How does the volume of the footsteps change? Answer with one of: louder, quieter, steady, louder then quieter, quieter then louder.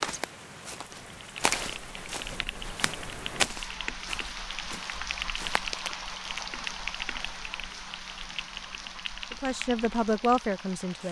louder then quieter.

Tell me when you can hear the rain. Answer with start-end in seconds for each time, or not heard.
0.0-11.0.